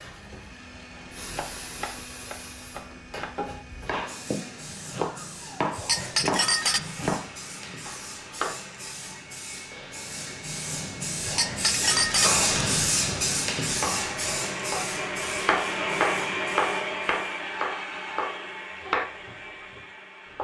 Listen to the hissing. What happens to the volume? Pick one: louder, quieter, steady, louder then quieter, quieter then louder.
louder then quieter.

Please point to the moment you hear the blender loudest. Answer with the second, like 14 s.
16 s.